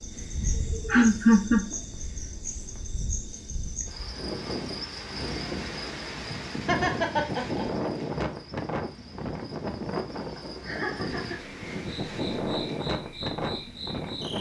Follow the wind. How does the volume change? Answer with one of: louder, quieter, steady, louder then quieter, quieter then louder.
louder.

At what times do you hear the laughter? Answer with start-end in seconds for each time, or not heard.
0.7-1.8, 6.7-7.7, 10.3-11.6.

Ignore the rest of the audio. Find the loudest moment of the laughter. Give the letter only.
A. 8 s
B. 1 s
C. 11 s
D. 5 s
B.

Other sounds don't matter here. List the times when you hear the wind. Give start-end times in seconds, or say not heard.
0.1-14.3.